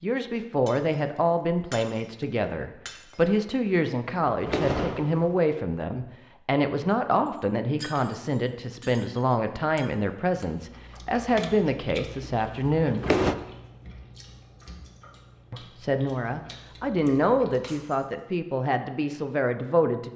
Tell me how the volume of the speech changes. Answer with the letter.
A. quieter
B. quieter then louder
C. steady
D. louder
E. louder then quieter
C.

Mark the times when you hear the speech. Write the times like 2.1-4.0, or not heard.
0.0-13.1, 15.5-20.1.